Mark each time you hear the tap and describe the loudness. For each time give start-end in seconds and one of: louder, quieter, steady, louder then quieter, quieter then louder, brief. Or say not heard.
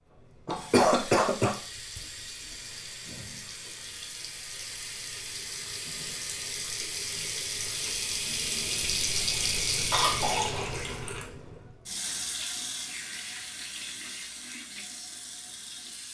0.0-16.0 louder then quieter.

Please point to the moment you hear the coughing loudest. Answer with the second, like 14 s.
1 s.